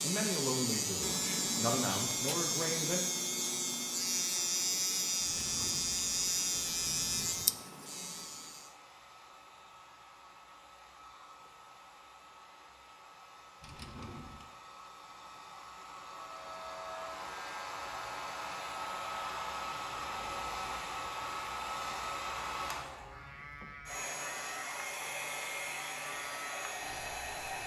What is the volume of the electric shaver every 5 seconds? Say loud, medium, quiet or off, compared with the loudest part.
loud, loud, off, quiet, quiet, quiet.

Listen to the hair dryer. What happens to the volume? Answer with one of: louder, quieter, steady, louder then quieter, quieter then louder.
louder.